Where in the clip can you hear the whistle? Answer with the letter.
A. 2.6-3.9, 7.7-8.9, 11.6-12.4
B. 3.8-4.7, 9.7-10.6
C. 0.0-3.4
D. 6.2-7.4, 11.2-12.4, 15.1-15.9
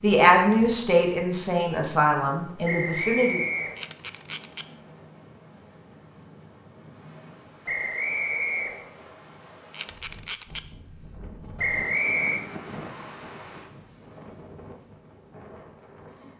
A.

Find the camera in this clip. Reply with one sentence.
You can hear the camera from 3.8 to 4.7 s and from 9.7 to 10.6 s.